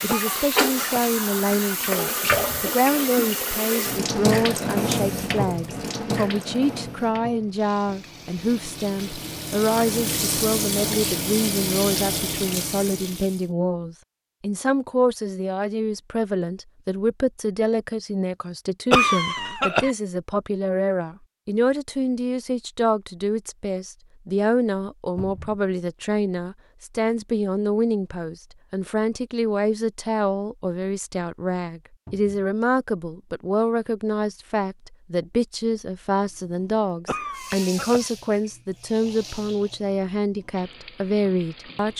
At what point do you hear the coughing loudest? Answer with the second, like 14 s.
19 s.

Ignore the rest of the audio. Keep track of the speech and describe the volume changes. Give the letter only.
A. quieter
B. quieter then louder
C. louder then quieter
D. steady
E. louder
D.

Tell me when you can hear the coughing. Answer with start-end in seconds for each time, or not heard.
0.1-1.1, 18.9-19.9, 37.0-38.1.